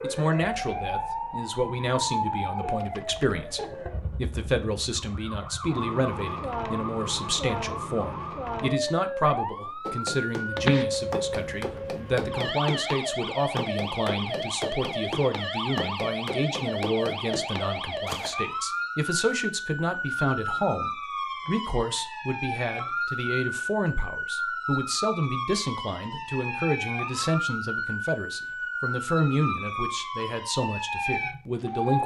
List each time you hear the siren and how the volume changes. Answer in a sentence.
The siren can be heard from 0.0 to 32.0 s, at a steady volume.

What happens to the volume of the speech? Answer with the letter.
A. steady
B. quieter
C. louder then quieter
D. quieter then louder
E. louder
A.